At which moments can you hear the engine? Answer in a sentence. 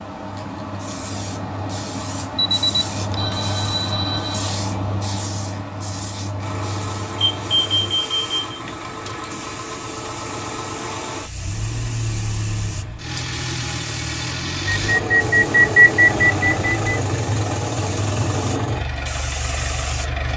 The engine can be heard from 6.4 to 20.3 s.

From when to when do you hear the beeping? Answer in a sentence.
You can hear the beeping from 2.4 to 4.5 s, from 7.2 to 8.6 s and from 14.7 to 17.0 s.